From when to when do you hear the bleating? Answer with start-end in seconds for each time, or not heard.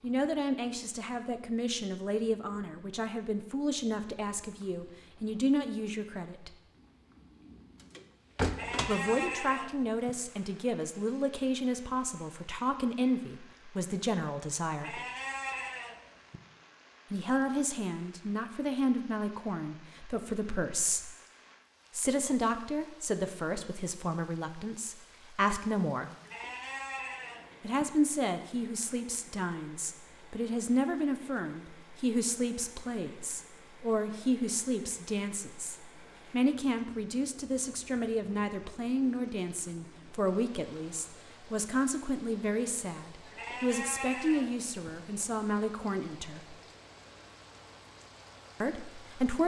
8.5-10.1, 14.8-16.4, 26.2-27.9, 43.3-44.9.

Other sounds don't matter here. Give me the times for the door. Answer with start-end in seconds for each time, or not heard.
8.0-9.1.